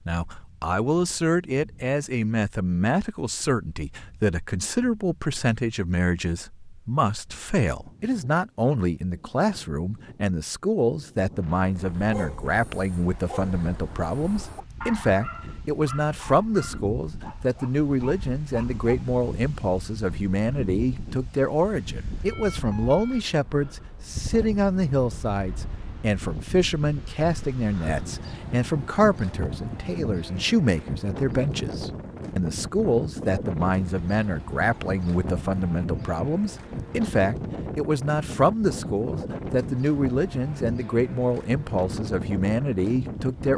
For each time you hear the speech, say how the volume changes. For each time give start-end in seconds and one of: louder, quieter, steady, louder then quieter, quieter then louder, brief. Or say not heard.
0.1-43.5 steady.